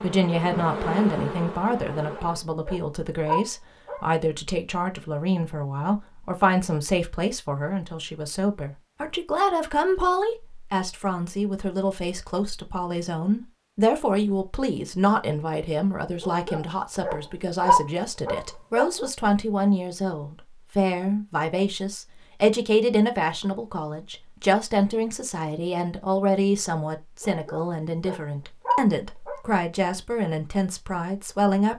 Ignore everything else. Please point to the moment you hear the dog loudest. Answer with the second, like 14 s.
18 s.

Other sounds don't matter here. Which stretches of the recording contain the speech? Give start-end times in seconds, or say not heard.
0.0-31.7.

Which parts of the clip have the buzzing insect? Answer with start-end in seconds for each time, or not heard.
0.0-2.5.